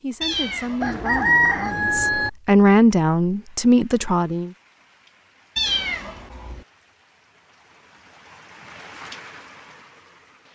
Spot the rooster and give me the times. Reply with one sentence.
The rooster can be heard from 0.8 to 2.3 s.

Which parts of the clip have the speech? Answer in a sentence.
You can hear the speech from 0.0 to 4.5 s.